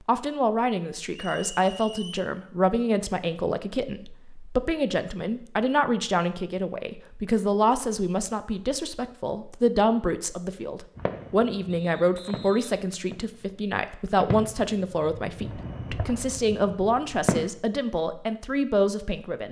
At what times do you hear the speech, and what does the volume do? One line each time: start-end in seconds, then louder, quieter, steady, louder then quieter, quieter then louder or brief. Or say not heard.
0.1-19.4 steady.